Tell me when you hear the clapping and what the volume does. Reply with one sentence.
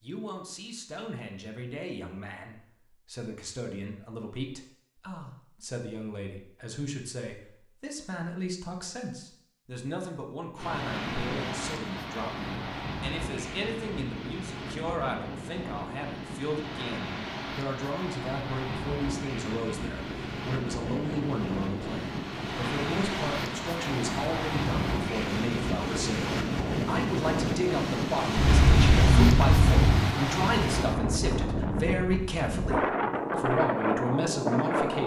The clapping can't be heard in this clip.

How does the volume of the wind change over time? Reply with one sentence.
The loudness of the wind goes up.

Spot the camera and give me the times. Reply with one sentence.
The camera can be heard from 28.4 to 30.1 s.